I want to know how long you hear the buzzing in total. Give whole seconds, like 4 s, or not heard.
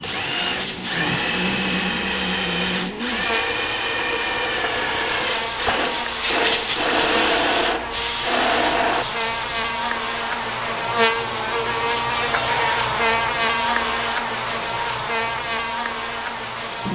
17 s.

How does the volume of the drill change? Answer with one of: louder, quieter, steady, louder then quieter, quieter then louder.
steady.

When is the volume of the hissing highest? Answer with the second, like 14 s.
7 s.